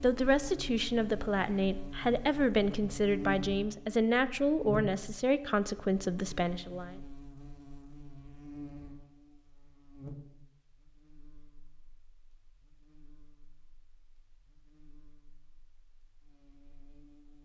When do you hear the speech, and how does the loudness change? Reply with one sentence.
The speech can be heard from 0.0 to 7.0 s, at a steady volume.